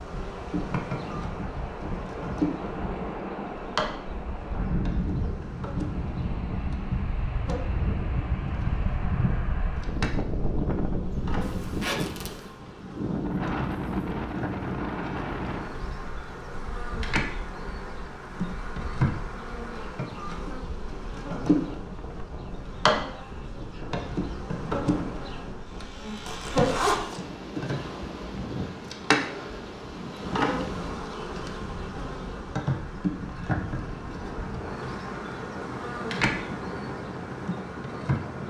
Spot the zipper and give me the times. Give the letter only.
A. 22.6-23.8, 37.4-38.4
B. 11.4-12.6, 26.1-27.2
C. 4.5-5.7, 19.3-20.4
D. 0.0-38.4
B.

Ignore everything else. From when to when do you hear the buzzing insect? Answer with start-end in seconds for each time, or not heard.
0.0-38.4.